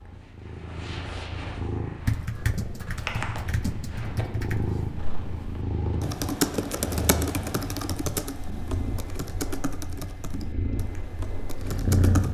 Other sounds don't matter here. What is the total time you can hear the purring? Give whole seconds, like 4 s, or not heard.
12 s.